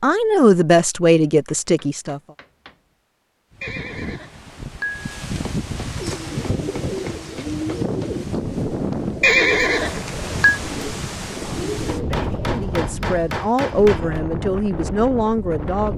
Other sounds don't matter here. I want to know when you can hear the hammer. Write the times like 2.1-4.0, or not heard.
1.2-2.8, 5.4-8.2, 11.8-14.2.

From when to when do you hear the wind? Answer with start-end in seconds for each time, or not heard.
3.5-15.9.